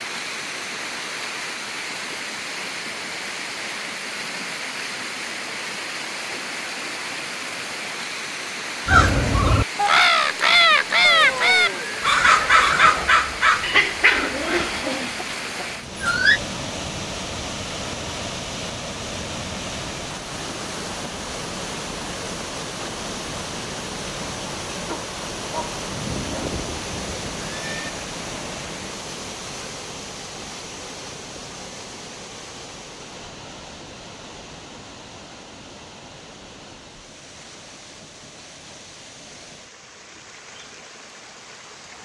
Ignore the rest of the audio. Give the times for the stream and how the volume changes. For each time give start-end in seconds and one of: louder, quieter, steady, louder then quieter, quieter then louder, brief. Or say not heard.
0.0-42.0 quieter.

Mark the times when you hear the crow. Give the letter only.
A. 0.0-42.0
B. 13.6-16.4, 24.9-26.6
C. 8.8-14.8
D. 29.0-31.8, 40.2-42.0
C.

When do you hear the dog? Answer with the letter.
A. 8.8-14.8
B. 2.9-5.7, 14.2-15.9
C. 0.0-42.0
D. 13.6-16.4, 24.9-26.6
D.